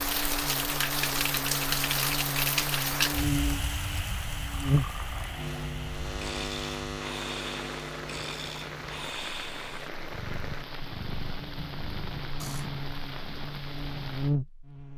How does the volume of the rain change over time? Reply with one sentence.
The volume of the rain goes down.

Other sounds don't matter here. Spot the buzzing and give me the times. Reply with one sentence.
The buzzing can be heard from 0.0 to 14.9 s.